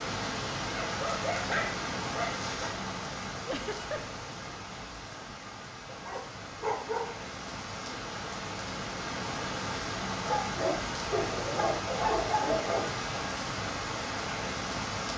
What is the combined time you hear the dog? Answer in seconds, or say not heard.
6 s.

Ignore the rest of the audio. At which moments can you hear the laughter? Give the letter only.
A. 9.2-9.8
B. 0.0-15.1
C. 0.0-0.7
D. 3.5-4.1
D.